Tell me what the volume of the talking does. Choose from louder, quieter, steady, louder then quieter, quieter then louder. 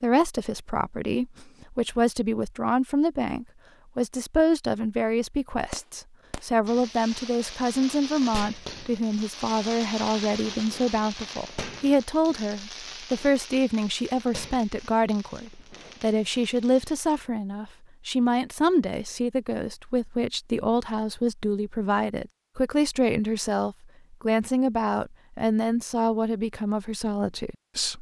steady.